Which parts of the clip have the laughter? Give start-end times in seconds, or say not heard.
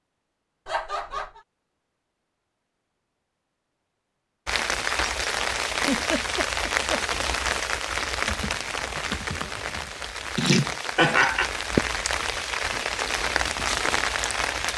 0.7-1.4, 5.8-7.2, 10.3-11.5.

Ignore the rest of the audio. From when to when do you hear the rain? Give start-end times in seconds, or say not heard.
4.5-14.7.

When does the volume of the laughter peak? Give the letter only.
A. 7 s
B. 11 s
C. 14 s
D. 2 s
B.